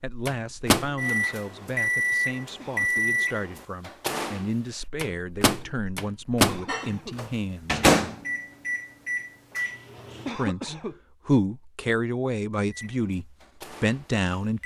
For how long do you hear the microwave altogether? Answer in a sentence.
The microwave can be heard for 12 seconds in total.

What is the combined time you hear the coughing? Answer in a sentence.
The coughing can be heard for 2 seconds in total.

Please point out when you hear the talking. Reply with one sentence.
You can hear the talking from 0.0 to 7.8 s and from 10.3 to 14.6 s.